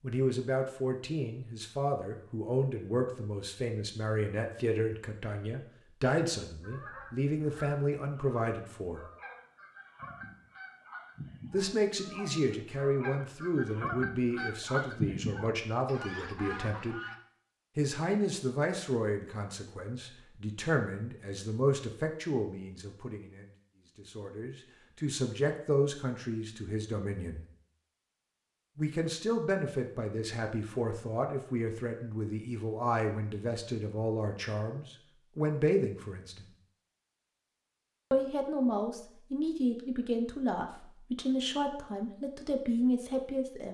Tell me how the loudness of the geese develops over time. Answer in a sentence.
The volume of the geese goes up.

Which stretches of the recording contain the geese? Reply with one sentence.
The geese can be heard from 6.6 to 17.1 s.